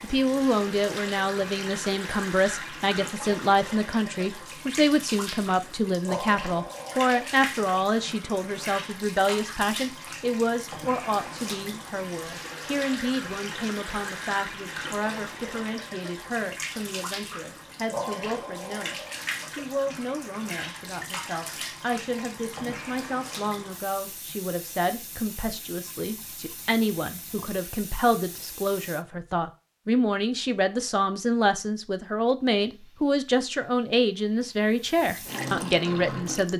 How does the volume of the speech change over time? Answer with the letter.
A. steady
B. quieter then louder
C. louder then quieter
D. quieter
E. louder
B.